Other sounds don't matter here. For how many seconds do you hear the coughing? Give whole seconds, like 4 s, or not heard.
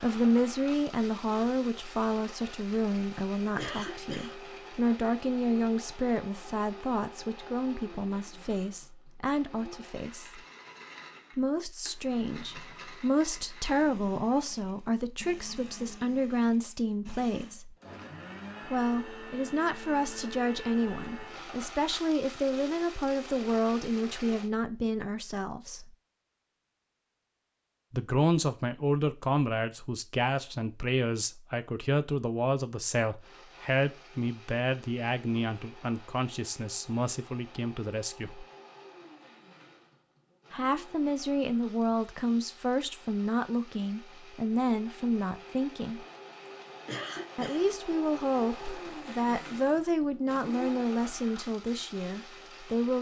2 s.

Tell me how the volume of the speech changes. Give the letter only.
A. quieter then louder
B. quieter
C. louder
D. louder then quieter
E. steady
E.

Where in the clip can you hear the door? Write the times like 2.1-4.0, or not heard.
not heard.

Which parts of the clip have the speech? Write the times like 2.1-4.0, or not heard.
0.0-10.4, 11.3-17.7, 18.6-25.9, 27.9-38.5, 40.5-46.0, 47.4-52.9.